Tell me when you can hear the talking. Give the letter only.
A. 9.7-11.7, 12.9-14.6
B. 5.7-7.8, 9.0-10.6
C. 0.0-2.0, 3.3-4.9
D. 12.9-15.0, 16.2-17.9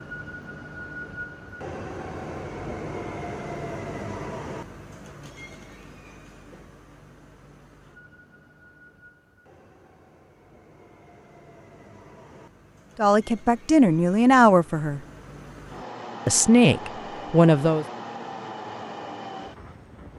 D.